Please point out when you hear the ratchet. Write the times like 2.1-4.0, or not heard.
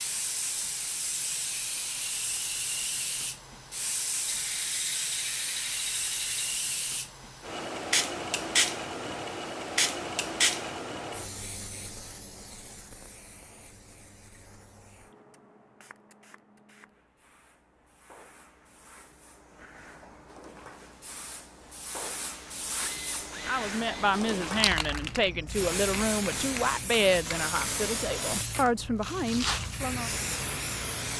4.2-6.5, 22.8-24.2.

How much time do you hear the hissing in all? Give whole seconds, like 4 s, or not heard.
31 s.